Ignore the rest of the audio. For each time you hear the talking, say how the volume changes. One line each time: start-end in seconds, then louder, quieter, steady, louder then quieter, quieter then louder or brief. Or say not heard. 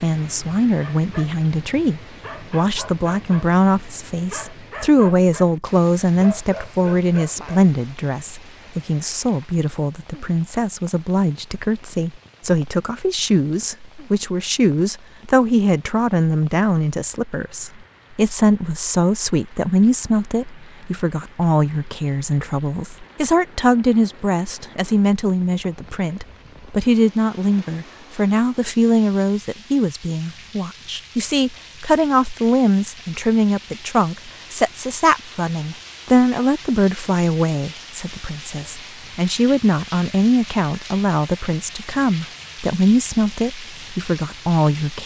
0.0-45.0 steady.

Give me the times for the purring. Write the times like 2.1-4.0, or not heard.
not heard.